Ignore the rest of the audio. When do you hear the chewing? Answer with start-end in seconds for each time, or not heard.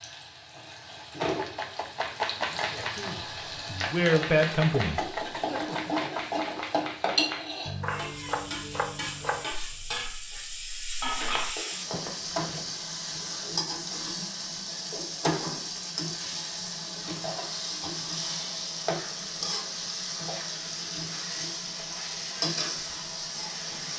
not heard.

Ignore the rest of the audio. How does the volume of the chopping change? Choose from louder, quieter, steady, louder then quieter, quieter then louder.
quieter.